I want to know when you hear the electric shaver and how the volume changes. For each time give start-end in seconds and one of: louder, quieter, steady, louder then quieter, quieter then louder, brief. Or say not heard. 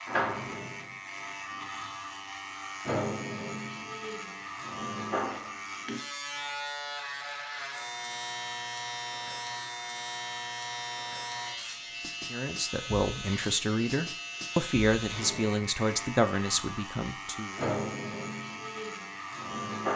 0.0-19.9 steady.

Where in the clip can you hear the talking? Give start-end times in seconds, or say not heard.
12.3-17.6.